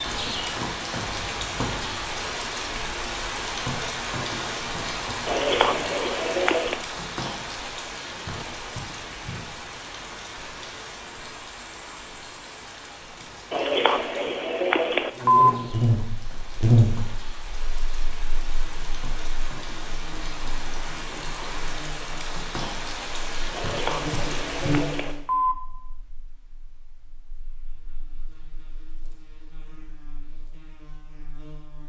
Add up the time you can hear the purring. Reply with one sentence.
The purring can't be heard in this clip.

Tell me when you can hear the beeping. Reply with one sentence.
You can hear the beeping from 5.2 to 6.8 s, from 13.5 to 15.5 s and from 23.5 to 25.6 s.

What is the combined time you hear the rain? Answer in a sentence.
You can hear the rain for 25 seconds altogether.